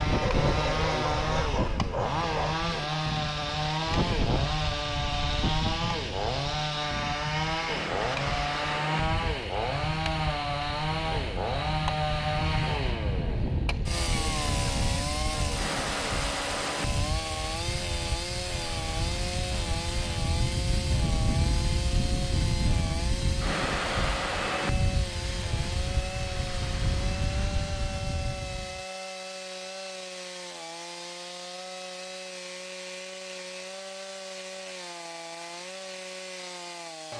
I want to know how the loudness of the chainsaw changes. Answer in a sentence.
The loudness of the chainsaw goes down.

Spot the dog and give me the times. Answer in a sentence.
The dog can be heard from 0.2 to 2.6 s.